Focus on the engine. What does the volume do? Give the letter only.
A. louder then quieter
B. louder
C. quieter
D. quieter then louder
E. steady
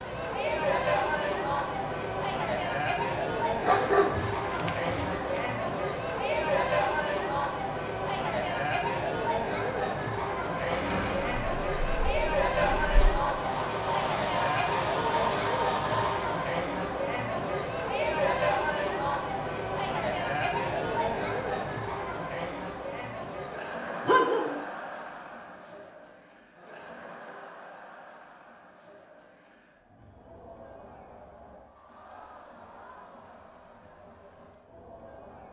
B.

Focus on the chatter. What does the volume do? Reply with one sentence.
The volume of the chatter goes down.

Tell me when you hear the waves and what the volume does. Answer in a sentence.
You can't hear the waves here.